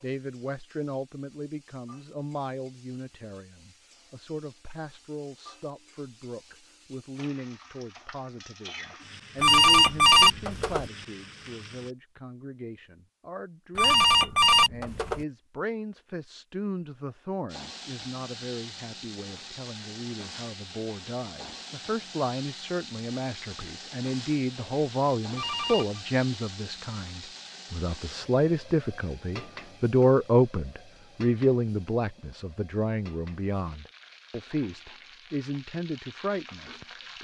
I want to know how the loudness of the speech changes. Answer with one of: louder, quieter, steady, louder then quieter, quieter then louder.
louder.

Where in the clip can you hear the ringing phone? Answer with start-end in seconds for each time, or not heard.
9.4-10.8, 13.8-15.2, 25.4-26.0.